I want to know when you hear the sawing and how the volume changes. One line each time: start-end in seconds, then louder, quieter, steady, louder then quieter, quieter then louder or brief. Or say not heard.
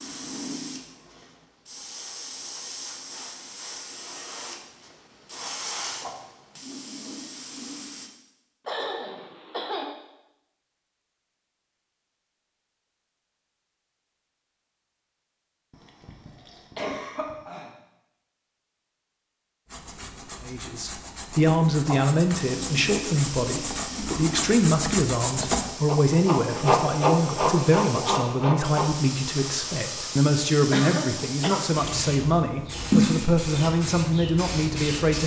19.6-28.9 louder.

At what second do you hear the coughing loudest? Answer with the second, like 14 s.
31 s.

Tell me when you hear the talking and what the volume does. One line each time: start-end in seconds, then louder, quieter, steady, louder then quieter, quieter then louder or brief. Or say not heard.
20.4-35.2 steady.